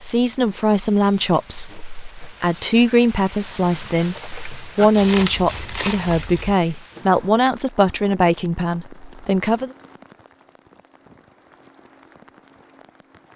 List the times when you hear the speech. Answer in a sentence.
The speech can be heard from 0.0 to 9.7 s.